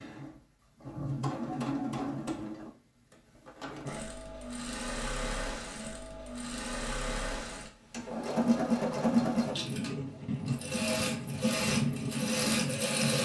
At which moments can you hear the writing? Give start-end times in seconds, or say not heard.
9.0-13.2.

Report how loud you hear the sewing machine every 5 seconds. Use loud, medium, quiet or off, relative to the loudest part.
medium, loud, loud.